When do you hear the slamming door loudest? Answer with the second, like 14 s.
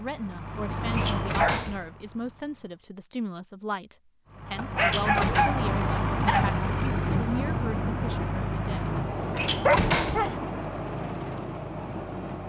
10 s.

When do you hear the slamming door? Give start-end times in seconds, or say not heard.
0.9-1.9, 4.8-5.5, 9.3-10.3.